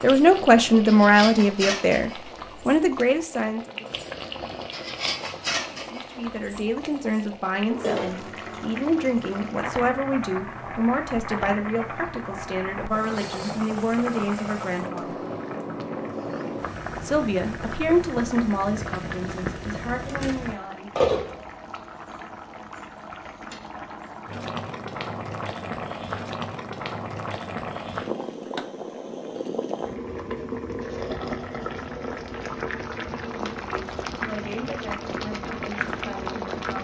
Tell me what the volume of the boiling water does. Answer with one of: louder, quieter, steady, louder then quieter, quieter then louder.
steady.